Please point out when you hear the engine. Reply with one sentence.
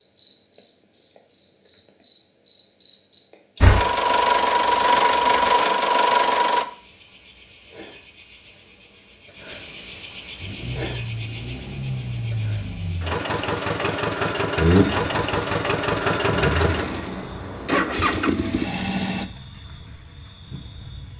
The engine can be heard from 3.6 to 6.7 s and from 10.4 to 19.2 s.